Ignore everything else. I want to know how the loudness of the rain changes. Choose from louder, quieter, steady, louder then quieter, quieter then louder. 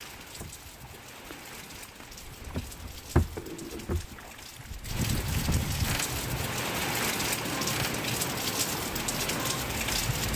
louder.